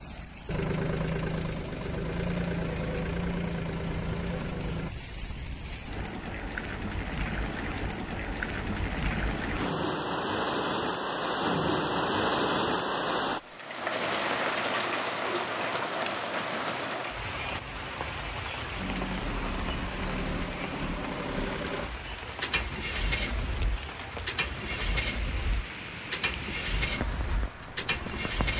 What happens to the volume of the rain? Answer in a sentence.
The loudness of the rain goes up, then down.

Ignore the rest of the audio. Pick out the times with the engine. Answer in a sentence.
You can hear the engine from 0.1 to 4.9 s and from 18.8 to 28.5 s.